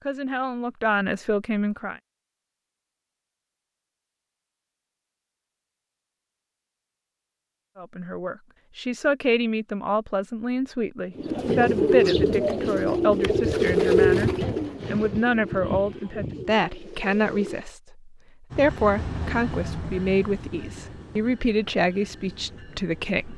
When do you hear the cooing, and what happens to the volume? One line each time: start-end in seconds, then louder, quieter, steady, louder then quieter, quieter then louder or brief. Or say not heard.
11.2-17.6 quieter.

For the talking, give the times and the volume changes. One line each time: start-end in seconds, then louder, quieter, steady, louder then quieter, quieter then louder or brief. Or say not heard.
0.0-2.0 brief
7.8-23.3 steady.